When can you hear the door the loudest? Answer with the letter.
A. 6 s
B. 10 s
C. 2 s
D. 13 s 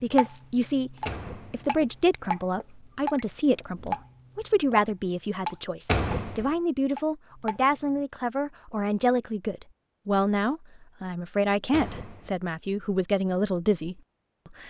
A.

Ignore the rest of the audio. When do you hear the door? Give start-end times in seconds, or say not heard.
1.1-2.1, 5.8-6.5, 11.7-12.3.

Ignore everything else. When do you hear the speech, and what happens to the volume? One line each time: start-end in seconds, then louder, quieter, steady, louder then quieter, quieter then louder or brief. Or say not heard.
0.0-14.6 steady.